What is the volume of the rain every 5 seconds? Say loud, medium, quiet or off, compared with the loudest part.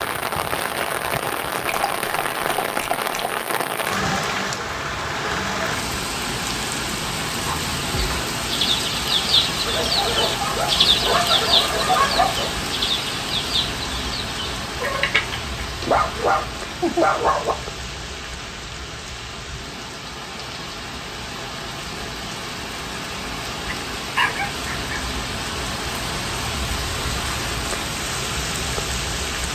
loud, loud, loud, medium, medium, loud.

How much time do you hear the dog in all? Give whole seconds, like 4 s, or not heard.
8 s.